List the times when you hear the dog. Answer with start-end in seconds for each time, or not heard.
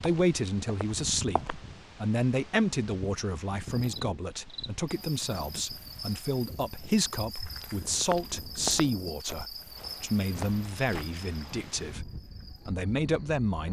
not heard.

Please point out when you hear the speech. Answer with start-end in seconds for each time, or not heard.
0.0-13.6.